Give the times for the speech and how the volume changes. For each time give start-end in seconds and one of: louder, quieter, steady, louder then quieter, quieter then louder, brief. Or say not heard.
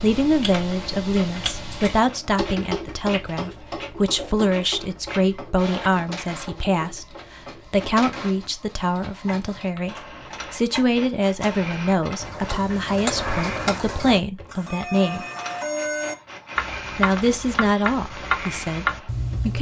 0.0-15.2 steady
16.9-19.5 brief.